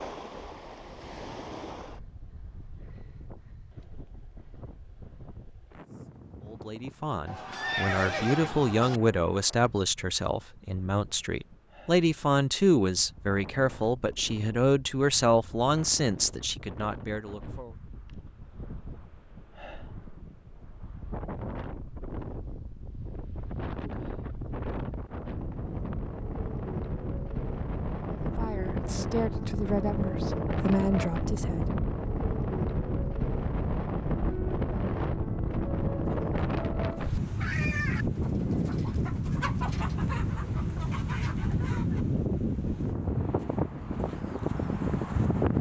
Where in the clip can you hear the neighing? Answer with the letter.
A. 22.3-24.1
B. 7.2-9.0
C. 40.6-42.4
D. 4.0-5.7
B.